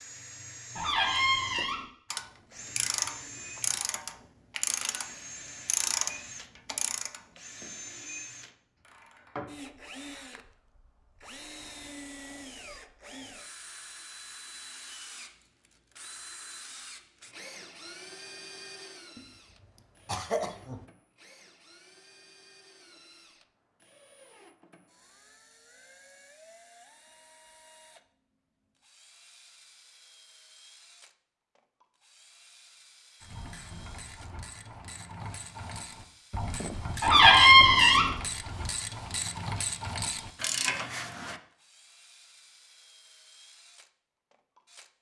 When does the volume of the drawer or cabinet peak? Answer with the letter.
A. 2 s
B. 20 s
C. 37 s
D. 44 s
C.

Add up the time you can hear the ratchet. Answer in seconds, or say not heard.
16 s.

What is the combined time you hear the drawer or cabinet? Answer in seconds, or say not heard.
2 s.